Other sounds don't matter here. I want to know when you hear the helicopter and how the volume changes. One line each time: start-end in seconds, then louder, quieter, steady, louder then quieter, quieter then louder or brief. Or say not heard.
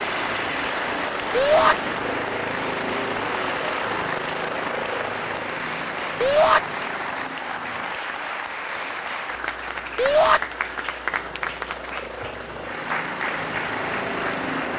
0.0-14.7 quieter then louder.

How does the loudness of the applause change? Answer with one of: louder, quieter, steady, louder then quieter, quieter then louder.
steady.